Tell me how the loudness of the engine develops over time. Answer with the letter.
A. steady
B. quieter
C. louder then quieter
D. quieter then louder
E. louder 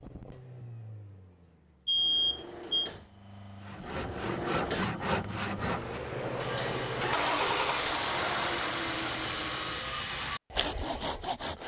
E.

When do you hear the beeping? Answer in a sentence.
The beeping can be heard from 1.9 to 2.9 s.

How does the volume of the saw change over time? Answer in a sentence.
The volume of the saw goes down, then up.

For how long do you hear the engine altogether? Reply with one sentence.
The engine can be heard for 10 seconds in total.